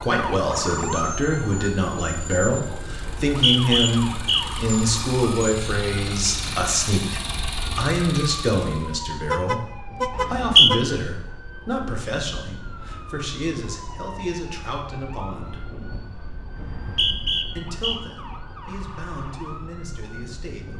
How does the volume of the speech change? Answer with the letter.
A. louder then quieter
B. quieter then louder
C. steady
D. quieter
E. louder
D.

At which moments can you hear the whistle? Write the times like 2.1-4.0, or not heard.
3.0-4.6, 10.2-10.7, 16.6-18.0.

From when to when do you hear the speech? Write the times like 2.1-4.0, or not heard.
0.0-9.6, 10.2-15.6, 17.6-20.7.